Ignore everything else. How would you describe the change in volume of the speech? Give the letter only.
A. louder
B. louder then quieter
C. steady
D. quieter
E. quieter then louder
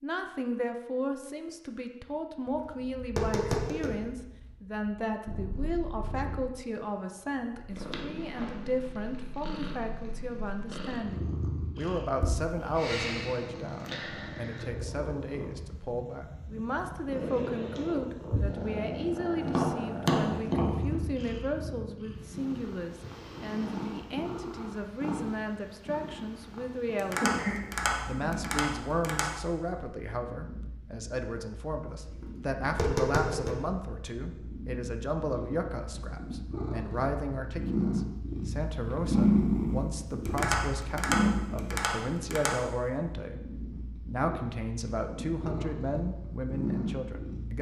C.